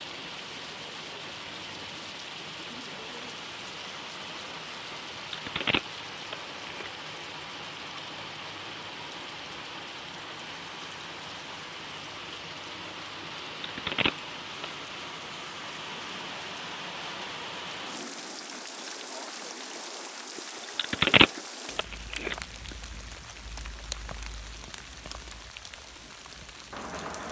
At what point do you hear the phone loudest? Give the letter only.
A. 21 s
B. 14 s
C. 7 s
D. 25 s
A.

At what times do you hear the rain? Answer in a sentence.
You can hear the rain from 0.0 to 27.2 s.